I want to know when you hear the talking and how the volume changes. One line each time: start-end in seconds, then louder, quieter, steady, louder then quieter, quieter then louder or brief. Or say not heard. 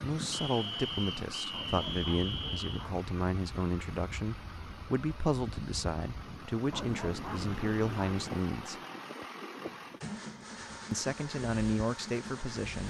0.0-8.8 steady
10.9-12.8 brief.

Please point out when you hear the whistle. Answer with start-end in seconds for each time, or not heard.
0.3-2.9.